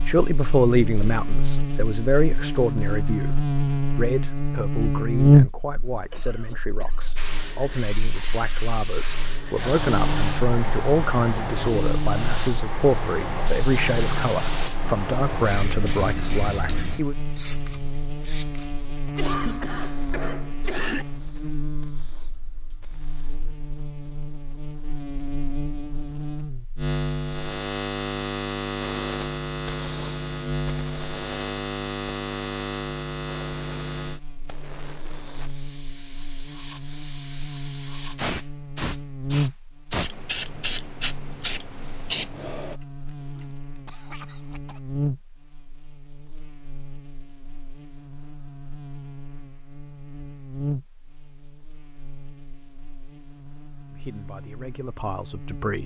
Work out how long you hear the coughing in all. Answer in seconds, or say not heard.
5 s.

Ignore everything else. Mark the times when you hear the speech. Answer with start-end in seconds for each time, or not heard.
0.0-17.1, 53.9-55.8.